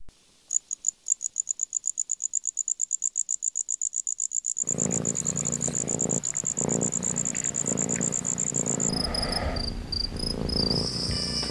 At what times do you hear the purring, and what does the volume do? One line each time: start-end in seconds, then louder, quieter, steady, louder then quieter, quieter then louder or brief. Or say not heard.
4.6-11.4 steady.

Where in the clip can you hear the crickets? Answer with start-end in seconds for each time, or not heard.
0.0-11.4.